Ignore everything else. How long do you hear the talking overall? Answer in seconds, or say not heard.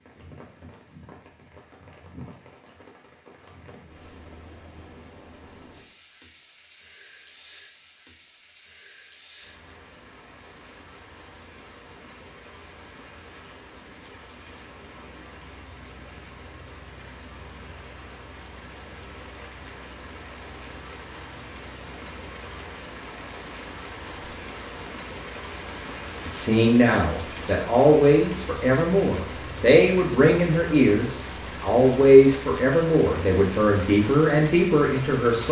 9 s.